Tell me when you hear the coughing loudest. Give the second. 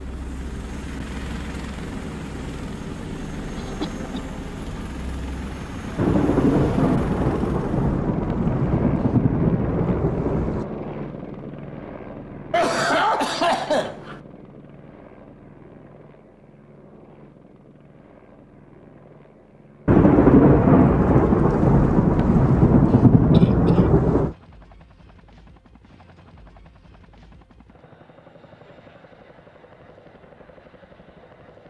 13 s.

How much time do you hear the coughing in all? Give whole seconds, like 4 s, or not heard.
3 s.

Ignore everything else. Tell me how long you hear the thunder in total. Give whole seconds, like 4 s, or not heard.
9 s.